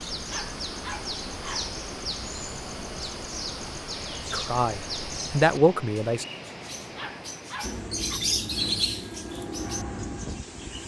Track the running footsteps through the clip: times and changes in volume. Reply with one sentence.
You can't hear the running footsteps here.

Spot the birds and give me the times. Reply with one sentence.
You can hear the birds from 0.0 to 10.8 s.